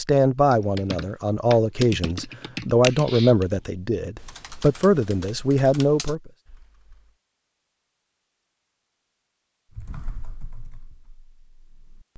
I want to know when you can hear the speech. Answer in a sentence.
The speech can be heard from 0.0 to 6.3 s.